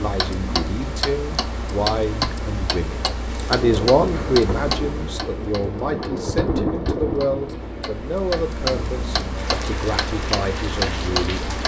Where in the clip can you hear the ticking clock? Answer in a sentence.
The ticking clock can be heard from 0.0 to 11.6 s.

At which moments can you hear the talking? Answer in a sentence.
You can hear the talking from 0.0 to 11.6 s.